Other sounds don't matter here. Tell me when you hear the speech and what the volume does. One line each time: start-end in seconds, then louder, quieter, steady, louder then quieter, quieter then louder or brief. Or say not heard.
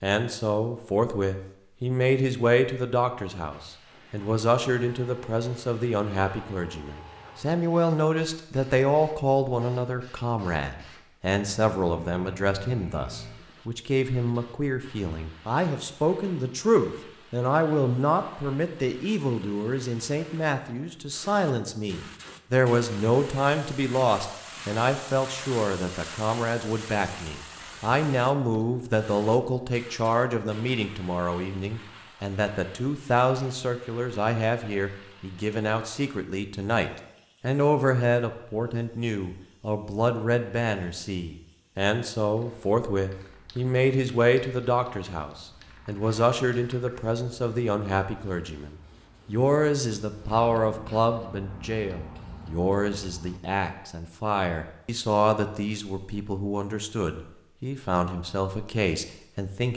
0.0-59.7 steady.